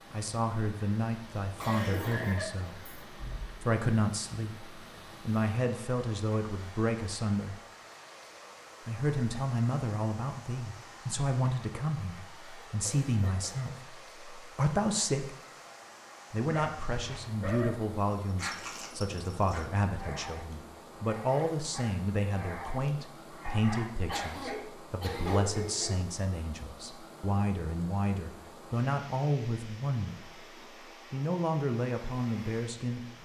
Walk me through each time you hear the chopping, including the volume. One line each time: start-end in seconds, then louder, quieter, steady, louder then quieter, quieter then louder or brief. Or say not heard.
not heard.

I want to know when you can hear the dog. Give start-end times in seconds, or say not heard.
16.5-26.1.